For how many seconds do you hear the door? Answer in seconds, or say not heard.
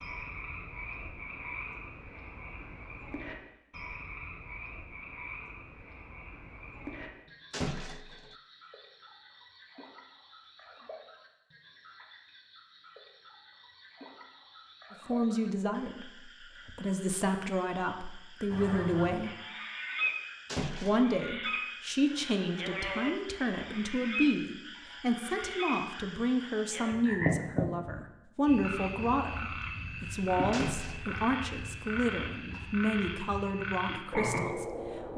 2 s.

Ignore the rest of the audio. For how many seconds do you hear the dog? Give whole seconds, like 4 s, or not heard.
not heard.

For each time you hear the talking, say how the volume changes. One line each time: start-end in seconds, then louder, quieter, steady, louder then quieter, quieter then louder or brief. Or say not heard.
14.9-19.4 quieter then louder
20.8-35.1 steady.